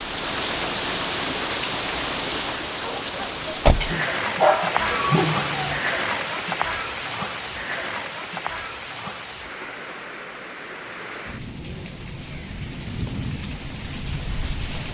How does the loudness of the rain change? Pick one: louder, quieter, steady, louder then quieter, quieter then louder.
quieter.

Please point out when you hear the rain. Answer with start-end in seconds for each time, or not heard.
0.0-14.8.